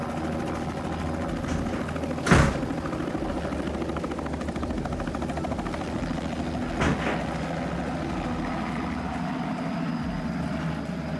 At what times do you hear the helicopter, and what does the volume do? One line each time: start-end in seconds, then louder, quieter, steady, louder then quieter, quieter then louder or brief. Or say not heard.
0.0-11.1 steady.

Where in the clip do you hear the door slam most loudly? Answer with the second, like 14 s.
2 s.